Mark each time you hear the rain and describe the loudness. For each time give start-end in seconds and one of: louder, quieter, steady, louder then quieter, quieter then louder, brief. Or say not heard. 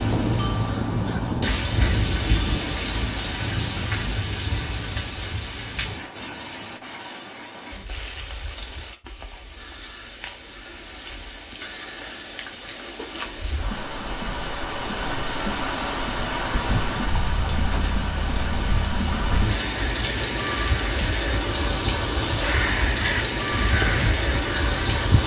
0.0-25.2 quieter then louder.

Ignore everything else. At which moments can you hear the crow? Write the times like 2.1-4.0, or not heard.
0.0-1.6, 22.4-25.2.